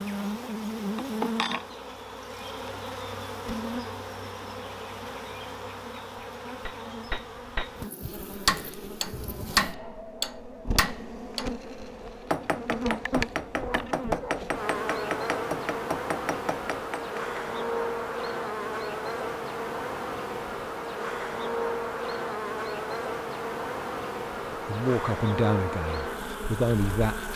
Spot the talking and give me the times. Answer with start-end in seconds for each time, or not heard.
24.5-27.3.